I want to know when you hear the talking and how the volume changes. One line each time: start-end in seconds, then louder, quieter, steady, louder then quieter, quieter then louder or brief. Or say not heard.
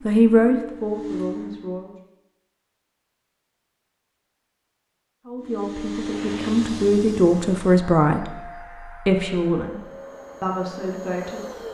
0.1-1.9 brief
5.2-11.6 louder then quieter.